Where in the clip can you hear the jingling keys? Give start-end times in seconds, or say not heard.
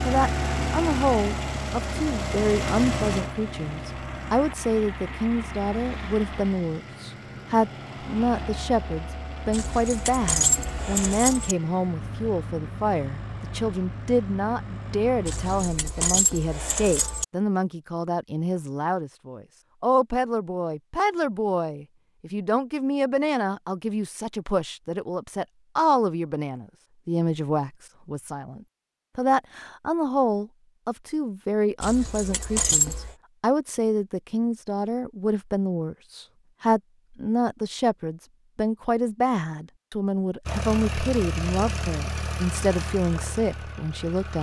9.5-11.6, 15.2-17.2, 31.8-33.1.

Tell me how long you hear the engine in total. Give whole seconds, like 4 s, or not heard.
20 s.